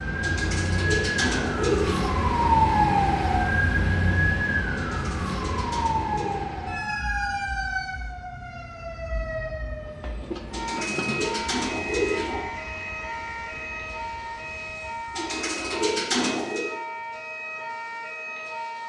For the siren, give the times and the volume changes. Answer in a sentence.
You can hear the siren from 0.0 to 18.8 s, getting quieter.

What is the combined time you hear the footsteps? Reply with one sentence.
The footsteps can't be heard in this clip.